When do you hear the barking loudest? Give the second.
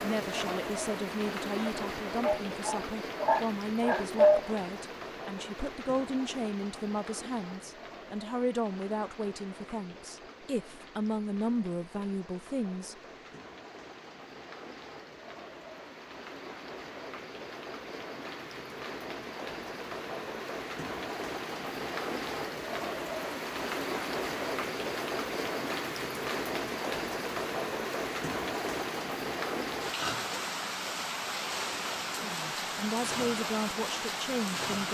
4 s.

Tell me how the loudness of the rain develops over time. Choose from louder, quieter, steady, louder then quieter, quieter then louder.
quieter then louder.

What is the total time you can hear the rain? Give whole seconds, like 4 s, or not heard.
35 s.